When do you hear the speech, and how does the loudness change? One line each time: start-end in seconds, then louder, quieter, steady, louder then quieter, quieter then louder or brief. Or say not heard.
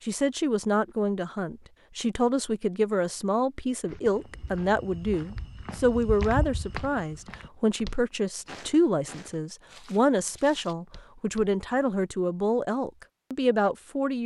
0.1-14.2 steady.